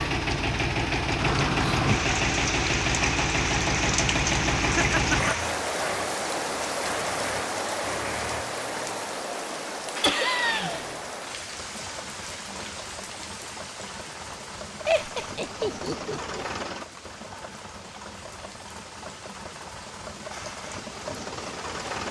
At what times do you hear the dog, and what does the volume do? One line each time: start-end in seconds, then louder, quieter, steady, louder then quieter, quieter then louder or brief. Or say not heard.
not heard.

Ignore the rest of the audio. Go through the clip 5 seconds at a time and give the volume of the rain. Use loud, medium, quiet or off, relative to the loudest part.
loud, loud, medium, quiet, quiet.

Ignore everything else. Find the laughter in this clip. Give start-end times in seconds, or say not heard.
4.8-5.3, 10.0-10.8, 14.8-16.4.